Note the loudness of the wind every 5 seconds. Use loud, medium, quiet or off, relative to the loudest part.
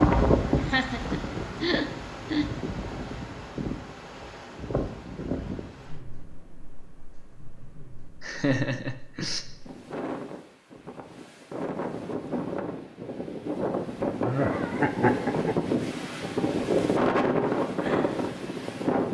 loud, quiet, medium, loud.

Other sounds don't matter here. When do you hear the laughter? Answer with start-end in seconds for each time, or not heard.
0.6-2.5, 8.2-9.4, 14.2-15.6.